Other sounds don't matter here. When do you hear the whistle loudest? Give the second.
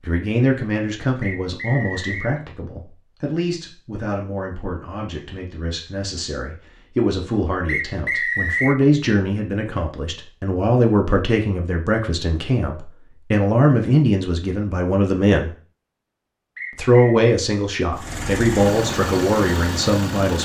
8 s.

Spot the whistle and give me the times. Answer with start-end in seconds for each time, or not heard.
1.2-2.3, 7.7-8.8, 16.6-17.1.